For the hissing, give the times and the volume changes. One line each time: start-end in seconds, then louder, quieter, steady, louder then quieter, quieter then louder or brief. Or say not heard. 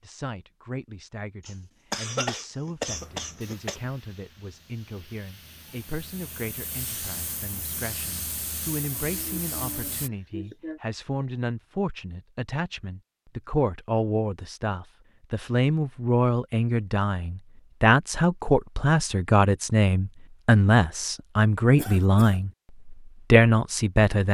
2.9-10.1 louder.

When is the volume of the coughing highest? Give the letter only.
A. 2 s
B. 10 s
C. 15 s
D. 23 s
A.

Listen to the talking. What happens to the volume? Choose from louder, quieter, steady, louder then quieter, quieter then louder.
louder.